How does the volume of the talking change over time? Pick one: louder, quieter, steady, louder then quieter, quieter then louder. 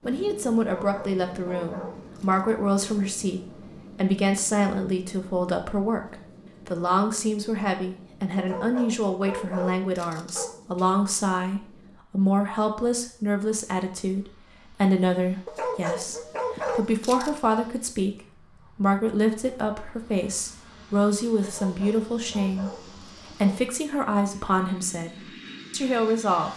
steady.